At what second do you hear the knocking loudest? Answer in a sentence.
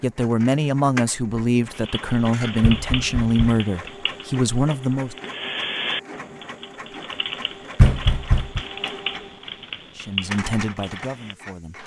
The volume of the knocking peaks at 8 seconds.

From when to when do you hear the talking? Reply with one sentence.
You can hear the talking from 0.0 to 5.2 s and from 9.9 to 11.8 s.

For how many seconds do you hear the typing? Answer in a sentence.
The typing can be heard for 10 seconds in total.